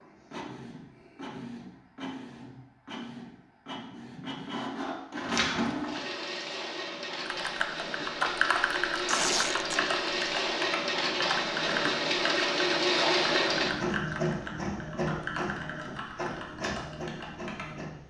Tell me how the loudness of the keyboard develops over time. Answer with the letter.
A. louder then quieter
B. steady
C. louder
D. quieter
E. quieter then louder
D.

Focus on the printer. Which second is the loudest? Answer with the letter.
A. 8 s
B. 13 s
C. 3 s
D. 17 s
B.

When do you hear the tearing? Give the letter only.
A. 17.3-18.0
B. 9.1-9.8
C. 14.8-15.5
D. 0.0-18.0
B.